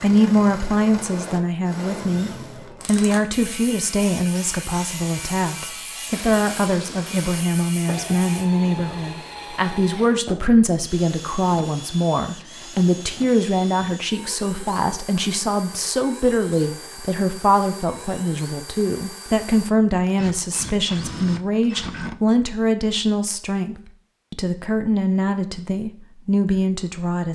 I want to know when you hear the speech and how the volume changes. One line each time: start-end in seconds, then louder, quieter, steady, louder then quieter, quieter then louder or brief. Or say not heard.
0.0-27.3 steady.